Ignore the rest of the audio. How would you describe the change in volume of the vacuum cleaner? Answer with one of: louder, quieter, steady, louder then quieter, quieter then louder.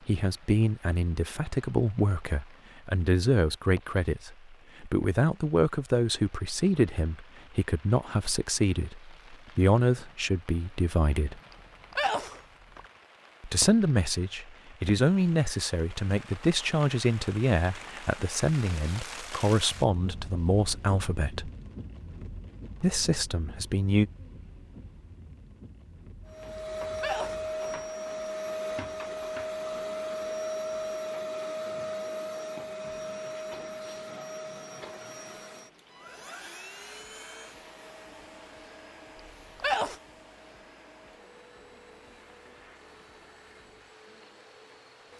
quieter.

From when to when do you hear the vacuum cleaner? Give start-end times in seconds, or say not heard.
26.2-45.1.